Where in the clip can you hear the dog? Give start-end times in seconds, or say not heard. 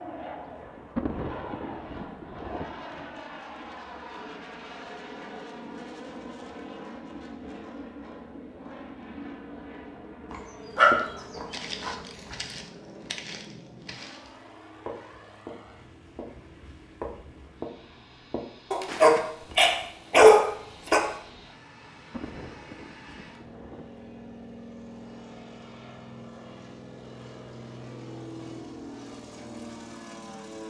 10.3-11.9, 18.7-21.0.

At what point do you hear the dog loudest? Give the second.
20 s.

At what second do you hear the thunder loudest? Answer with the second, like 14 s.
1 s.